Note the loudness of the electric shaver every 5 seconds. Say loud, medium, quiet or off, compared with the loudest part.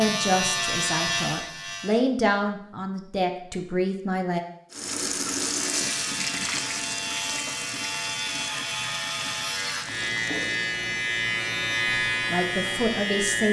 loud, medium, loud.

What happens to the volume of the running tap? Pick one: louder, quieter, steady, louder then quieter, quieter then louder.
quieter.